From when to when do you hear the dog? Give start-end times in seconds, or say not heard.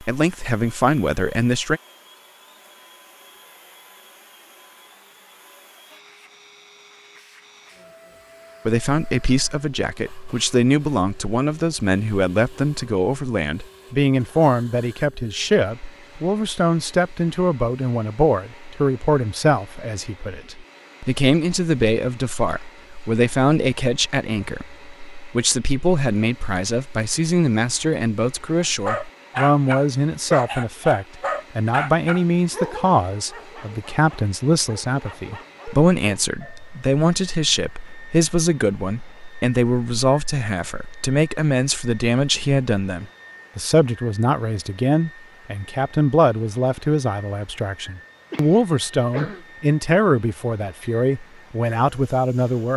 28.9-36.8.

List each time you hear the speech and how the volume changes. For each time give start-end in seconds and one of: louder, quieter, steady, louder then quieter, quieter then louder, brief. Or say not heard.
0.0-1.8 brief
8.7-52.7 steady.